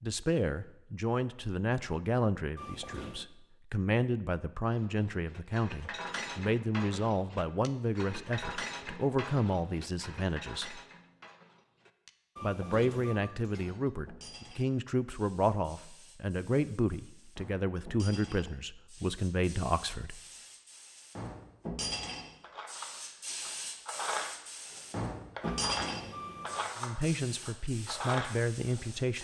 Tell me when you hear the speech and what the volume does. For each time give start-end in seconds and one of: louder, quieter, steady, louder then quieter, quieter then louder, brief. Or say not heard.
0.0-10.8 steady
12.4-20.2 steady
26.8-29.1 brief.